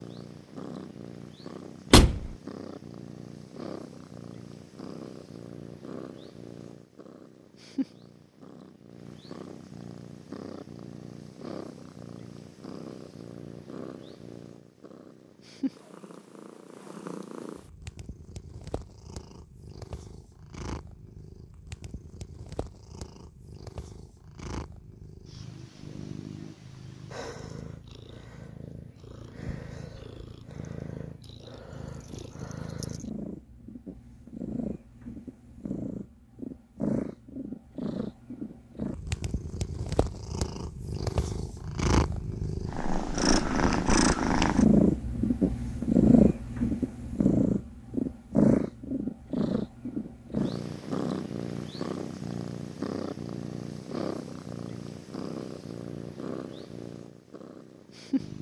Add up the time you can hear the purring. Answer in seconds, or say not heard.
58 s.